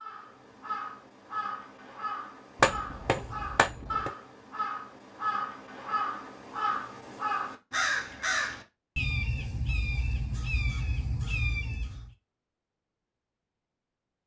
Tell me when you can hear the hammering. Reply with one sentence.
You can hear the hammering from 2.6 to 4.1 s.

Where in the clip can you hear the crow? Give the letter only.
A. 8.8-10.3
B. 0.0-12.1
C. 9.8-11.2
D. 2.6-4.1
B.